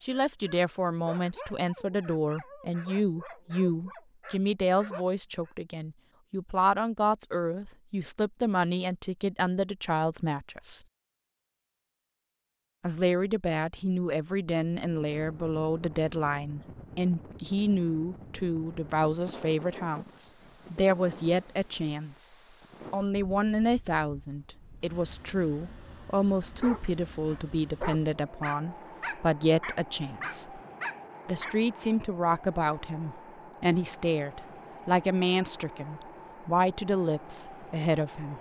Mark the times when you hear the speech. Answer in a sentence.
The speech can be heard from 0.0 to 10.8 s, from 12.8 to 22.3 s, from 22.9 to 30.6 s and from 31.2 to 38.3 s.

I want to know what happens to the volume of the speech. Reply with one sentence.
The loudness of the speech stays about the same.